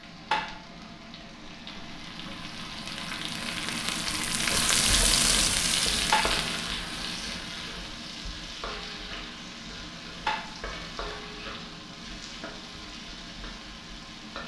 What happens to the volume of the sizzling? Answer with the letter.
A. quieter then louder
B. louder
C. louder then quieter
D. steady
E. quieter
C.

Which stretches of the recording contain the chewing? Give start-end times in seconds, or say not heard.
not heard.